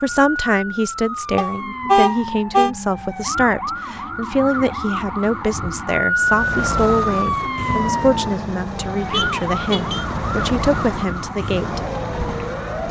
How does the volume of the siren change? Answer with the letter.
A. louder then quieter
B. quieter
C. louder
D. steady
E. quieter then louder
A.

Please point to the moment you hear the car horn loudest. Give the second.
2 s.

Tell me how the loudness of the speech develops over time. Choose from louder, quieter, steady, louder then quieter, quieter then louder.
steady.